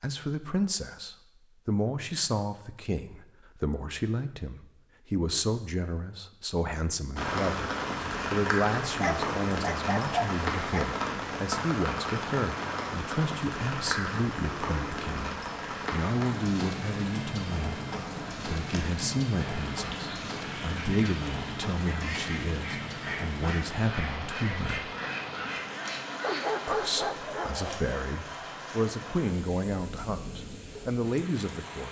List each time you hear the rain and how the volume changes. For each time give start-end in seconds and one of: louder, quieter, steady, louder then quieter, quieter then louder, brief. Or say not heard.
7.2-31.8 quieter.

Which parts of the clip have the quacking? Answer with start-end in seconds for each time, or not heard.
18.6-26.9.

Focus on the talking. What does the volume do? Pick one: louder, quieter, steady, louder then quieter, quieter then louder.
steady.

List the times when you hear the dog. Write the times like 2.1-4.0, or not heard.
8.9-10.8, 26.2-27.9.